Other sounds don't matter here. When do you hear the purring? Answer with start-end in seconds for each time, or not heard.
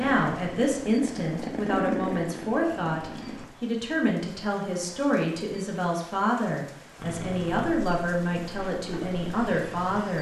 0.0-3.5, 7.0-10.1.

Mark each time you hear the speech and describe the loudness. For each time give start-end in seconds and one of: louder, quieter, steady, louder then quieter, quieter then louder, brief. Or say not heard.
0.0-10.1 steady.